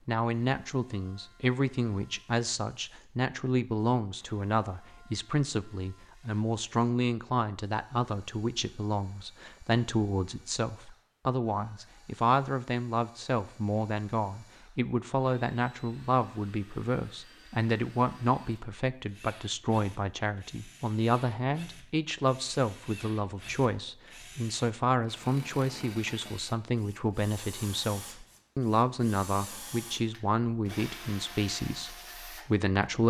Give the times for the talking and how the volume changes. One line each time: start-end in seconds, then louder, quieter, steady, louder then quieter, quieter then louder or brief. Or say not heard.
0.1-33.0 steady.